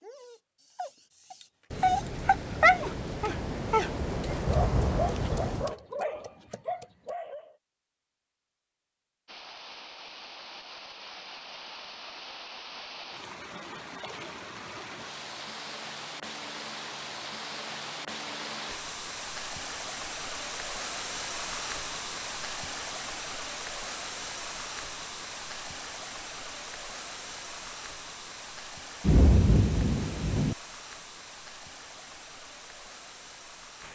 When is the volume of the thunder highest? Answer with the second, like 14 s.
29 s.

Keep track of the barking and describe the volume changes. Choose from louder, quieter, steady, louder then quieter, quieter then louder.
louder then quieter.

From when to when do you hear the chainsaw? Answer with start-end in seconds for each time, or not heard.
not heard.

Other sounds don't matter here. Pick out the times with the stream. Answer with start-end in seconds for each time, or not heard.
9.2-33.8.